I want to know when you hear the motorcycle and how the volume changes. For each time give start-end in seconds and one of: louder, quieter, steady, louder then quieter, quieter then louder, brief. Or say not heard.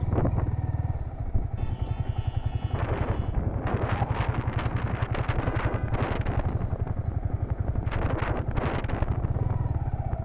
0.0-10.2 steady.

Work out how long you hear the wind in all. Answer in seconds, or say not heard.
10 s.